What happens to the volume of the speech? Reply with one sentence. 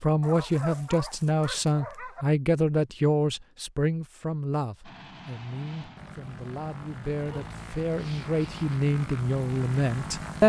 The loudness of the speech goes down, then up.